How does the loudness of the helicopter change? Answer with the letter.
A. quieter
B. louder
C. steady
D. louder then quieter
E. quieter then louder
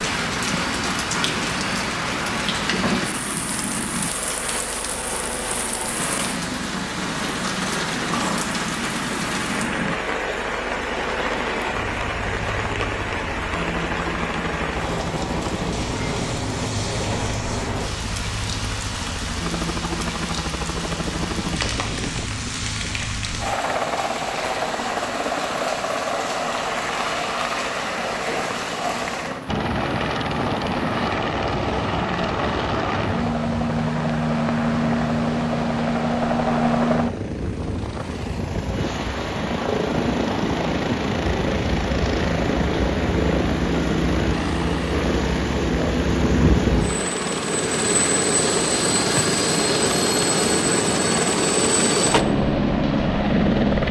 B.